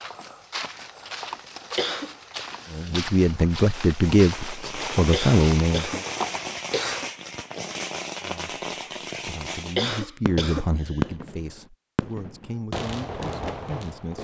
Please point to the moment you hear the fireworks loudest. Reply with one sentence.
The loudest moment of the fireworks is at 11 seconds.